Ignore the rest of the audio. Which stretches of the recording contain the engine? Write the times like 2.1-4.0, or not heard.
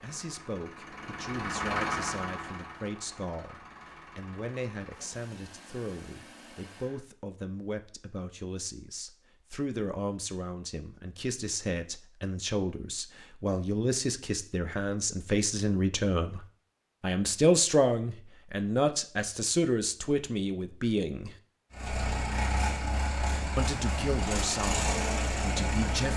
0.0-7.0, 21.7-26.1.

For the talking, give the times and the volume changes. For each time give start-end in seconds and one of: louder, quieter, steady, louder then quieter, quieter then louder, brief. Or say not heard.
0.0-16.4 louder
17.0-21.4 quieter
23.6-26.1 brief.